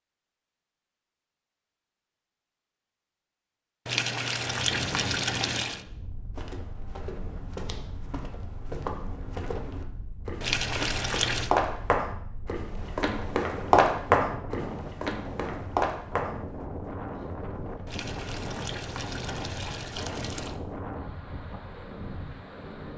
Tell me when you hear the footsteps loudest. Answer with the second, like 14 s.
14 s.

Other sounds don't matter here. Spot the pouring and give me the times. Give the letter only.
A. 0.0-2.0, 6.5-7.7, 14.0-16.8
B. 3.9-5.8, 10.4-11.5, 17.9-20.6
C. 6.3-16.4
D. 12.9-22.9
B.